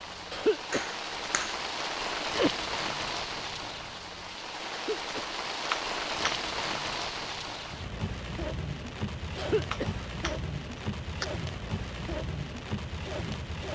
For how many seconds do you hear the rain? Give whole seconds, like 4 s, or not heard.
14 s.